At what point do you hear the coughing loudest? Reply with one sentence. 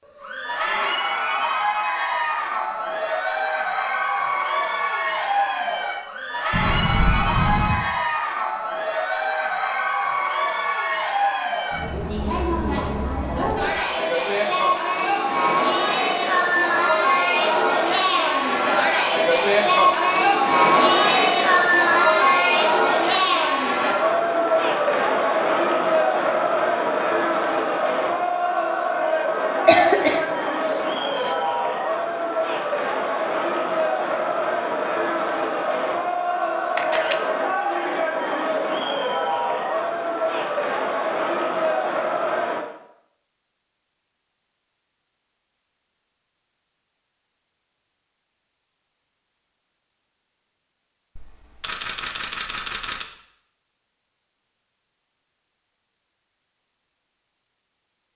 The loudest moment of the coughing is at 30 seconds.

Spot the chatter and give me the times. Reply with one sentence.
The chatter can be heard from 0.0 to 42.6 s.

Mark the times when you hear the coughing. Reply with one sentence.
The coughing can be heard from 29.6 to 31.4 s.